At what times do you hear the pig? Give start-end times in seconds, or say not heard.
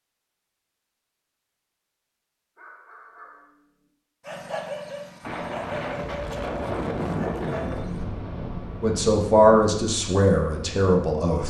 not heard.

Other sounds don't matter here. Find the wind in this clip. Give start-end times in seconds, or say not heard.
5.2-11.4.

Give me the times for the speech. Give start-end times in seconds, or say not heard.
8.8-11.4.